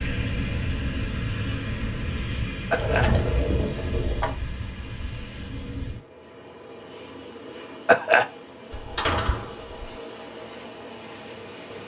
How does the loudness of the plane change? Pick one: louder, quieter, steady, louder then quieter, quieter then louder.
quieter.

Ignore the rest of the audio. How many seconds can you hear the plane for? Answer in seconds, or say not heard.
12 s.